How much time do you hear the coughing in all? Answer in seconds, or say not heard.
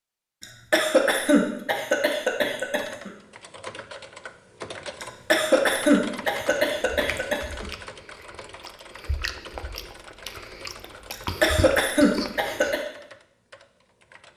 7 s.